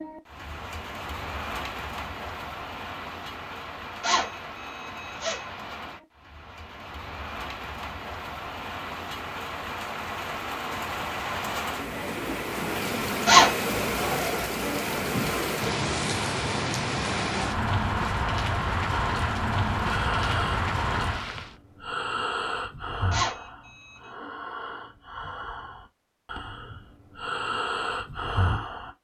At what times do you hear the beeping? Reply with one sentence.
You can hear the beeping from 4.0 to 5.5 s, from 13.2 to 13.7 s and from 23.1 to 24.1 s.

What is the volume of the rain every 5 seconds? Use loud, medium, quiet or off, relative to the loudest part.
medium, medium, loud, loud, loud, off.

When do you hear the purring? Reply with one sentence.
The purring can't be heard in this clip.